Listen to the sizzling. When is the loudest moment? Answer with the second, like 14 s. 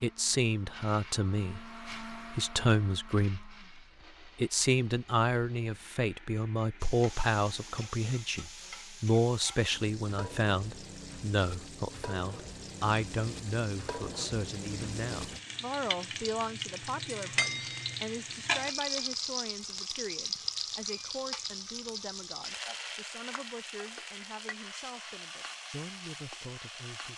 19 s.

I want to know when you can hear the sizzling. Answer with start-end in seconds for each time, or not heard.
6.8-27.1.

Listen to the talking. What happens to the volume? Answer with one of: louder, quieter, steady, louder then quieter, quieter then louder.
quieter.